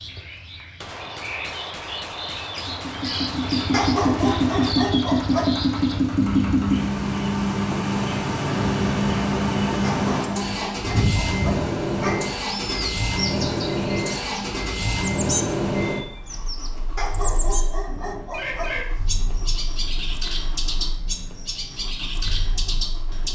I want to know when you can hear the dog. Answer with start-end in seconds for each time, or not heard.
3.7-5.5, 9.8-12.3, 16.9-18.9.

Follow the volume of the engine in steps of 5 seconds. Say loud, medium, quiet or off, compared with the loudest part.
loud, loud, loud, medium, quiet.